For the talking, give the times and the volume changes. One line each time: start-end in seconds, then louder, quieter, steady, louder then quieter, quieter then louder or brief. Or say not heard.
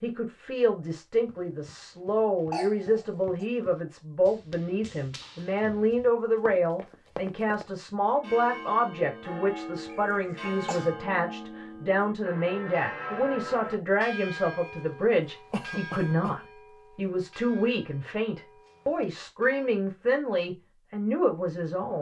0.0-21.9 steady.